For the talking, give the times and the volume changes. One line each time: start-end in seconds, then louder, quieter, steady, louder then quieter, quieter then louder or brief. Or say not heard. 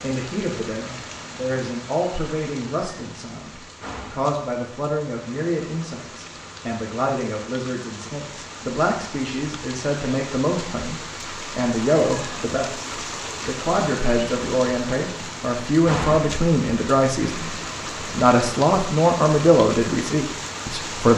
0.0-21.1 louder.